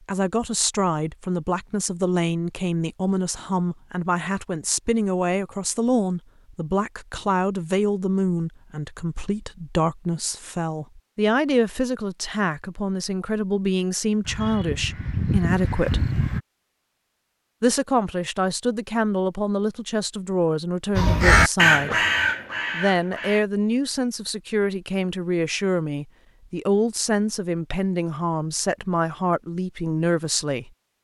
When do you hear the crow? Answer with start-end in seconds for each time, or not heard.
14.2-16.4, 20.9-23.4.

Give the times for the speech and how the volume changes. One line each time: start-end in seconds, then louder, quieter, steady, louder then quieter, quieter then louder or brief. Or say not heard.
0.1-16.1 steady
17.6-22.1 steady
22.7-30.7 steady.